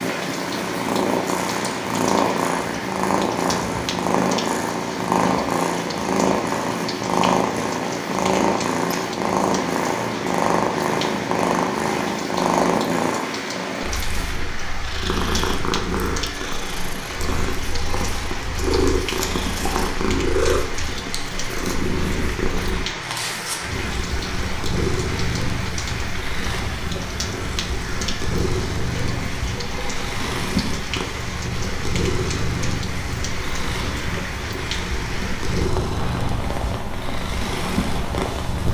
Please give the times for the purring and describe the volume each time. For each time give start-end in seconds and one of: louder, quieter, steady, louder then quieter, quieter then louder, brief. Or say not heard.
0.0-38.6 quieter.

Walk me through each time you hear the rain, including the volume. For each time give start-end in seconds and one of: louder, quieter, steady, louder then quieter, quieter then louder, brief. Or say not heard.
0.0-38.6 steady.